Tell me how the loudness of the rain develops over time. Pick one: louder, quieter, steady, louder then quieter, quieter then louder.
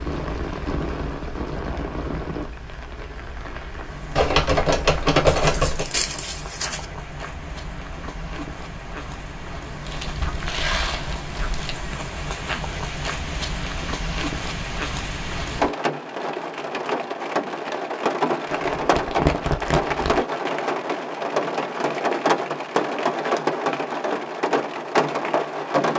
louder.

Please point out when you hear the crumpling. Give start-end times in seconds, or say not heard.
5.3-6.8, 9.8-11.8, 18.5-20.2.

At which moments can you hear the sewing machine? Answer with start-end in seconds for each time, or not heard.
not heard.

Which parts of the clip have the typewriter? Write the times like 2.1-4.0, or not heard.
4.2-5.9.